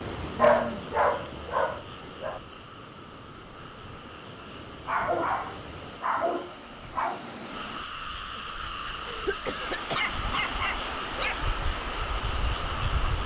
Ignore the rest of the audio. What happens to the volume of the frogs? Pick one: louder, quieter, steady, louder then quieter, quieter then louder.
louder.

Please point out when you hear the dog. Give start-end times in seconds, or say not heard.
0.3-2.4, 4.8-7.2, 9.4-11.3.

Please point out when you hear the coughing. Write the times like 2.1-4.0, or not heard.
9.1-10.1.